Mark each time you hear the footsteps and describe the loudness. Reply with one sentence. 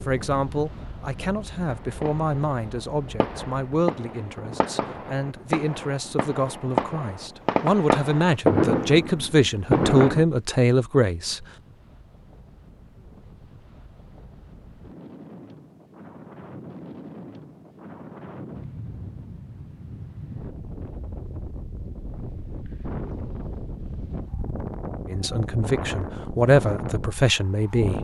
You can't hear the footsteps here.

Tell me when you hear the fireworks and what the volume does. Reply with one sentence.
The fireworks can be heard from 1.6 to 10.2 s, getting louder.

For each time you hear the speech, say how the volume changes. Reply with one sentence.
You can hear the speech from 0.0 to 11.4 s, getting louder; and briefly from 25.1 to 28.0 s.